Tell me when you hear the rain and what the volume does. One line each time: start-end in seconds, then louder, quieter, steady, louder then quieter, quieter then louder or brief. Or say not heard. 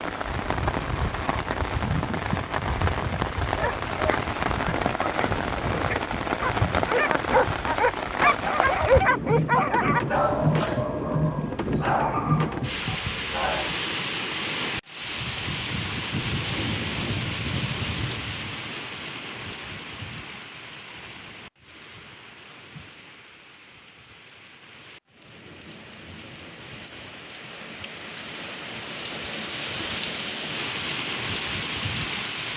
0.0-32.5 quieter then louder.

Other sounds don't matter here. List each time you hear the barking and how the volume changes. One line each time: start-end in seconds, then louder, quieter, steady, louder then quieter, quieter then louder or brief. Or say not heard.
3.4-13.8 louder then quieter.